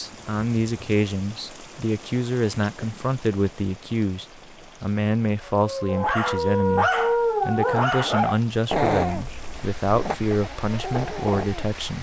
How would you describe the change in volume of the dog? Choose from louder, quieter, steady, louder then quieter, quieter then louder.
quieter.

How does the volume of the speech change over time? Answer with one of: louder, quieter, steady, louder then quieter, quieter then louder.
steady.